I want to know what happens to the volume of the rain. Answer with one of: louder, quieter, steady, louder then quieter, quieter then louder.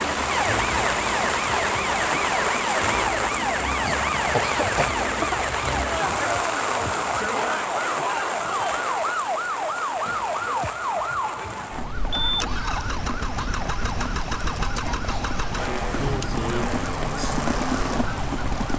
quieter then louder.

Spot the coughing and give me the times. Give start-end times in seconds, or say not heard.
3.9-5.4.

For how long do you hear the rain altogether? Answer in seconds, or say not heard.
19 s.